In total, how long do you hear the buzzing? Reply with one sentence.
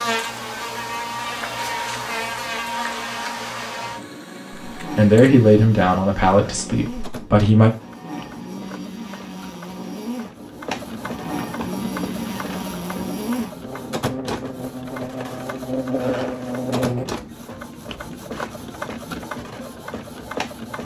The buzzing can be heard for 17 seconds in total.